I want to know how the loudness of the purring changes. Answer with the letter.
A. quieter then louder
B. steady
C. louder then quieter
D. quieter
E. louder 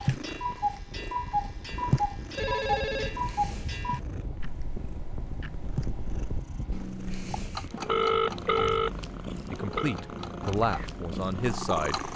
A.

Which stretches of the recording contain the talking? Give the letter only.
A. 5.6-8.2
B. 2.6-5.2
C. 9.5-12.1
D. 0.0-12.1
C.